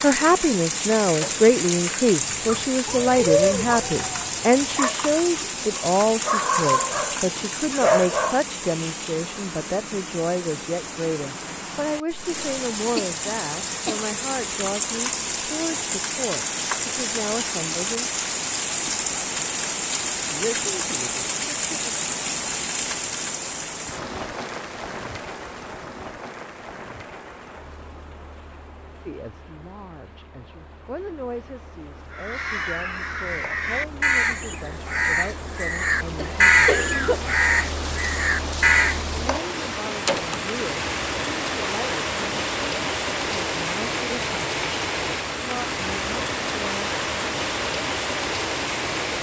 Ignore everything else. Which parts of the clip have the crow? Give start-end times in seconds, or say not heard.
32.1-39.0.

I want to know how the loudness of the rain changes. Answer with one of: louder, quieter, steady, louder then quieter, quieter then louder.
quieter then louder.